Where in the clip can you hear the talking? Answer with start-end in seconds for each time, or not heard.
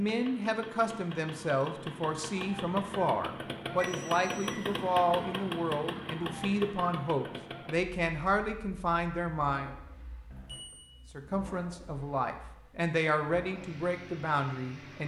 0.0-9.8, 11.1-15.0.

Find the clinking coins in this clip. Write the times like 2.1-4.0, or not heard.
not heard.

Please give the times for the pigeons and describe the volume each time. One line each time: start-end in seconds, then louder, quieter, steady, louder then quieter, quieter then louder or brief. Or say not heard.
not heard.